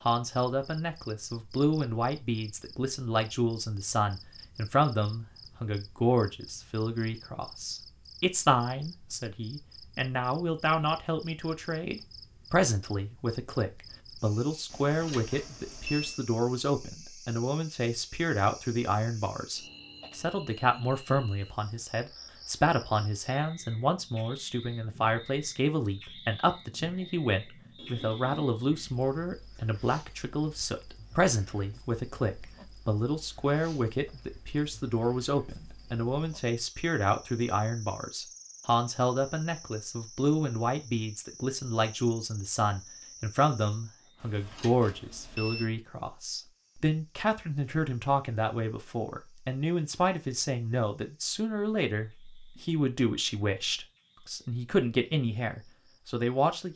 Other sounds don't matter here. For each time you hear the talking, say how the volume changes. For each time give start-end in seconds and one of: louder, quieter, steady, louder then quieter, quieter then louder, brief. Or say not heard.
0.1-56.7 steady.